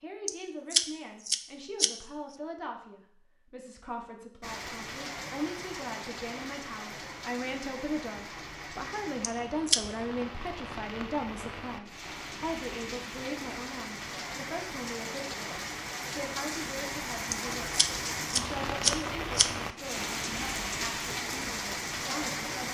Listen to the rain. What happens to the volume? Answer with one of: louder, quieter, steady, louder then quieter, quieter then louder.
louder.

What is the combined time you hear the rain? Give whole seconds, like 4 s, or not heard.
18 s.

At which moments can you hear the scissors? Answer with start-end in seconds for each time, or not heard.
0.2-1.9, 9.2-9.8, 17.3-19.5.